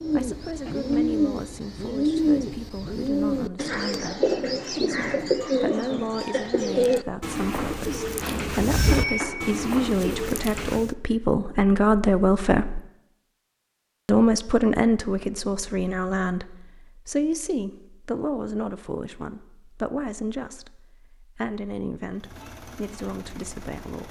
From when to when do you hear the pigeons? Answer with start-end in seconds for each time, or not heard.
0.0-10.9.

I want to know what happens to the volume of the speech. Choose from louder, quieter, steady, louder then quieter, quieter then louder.
louder then quieter.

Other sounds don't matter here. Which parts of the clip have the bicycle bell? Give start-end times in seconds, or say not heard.
8.2-9.3.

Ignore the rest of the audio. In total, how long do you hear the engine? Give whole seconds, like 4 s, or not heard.
2 s.